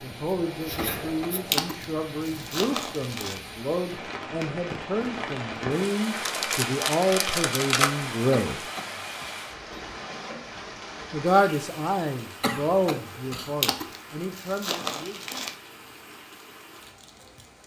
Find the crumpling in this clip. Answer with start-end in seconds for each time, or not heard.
1.5-3.4, 6.1-7.9, 13.6-15.6.